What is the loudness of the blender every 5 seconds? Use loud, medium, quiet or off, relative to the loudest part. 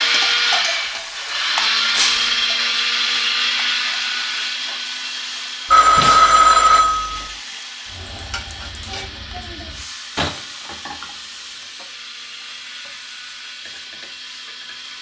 loud, quiet, quiet.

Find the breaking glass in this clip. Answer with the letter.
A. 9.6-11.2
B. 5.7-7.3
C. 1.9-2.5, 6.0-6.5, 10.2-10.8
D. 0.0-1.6
C.